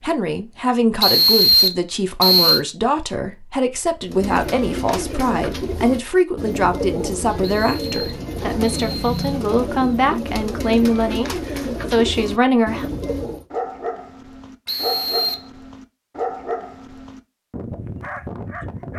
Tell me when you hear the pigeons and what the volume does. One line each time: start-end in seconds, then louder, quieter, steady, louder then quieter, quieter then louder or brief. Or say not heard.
4.0-13.4 steady.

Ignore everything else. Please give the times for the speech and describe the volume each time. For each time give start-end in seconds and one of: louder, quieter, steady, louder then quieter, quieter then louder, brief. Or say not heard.
0.0-12.9 steady.